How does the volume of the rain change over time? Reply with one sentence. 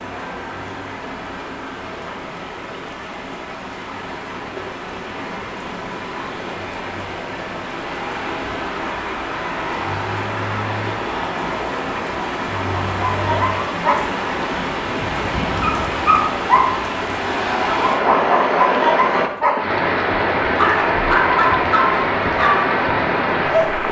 The loudness of the rain goes up.